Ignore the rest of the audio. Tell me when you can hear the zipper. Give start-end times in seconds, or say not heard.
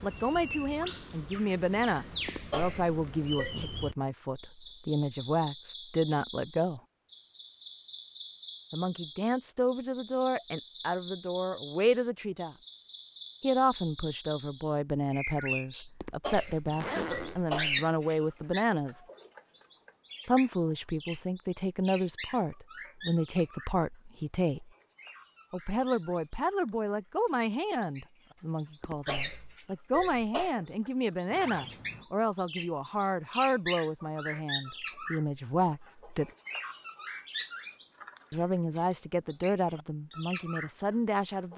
16.6-17.4, 31.3-32.0.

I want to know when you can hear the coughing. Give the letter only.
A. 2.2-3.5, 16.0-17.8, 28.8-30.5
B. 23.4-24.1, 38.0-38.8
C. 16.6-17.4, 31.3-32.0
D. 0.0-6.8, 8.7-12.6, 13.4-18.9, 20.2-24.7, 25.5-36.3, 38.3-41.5
A.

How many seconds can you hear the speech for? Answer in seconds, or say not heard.
35 s.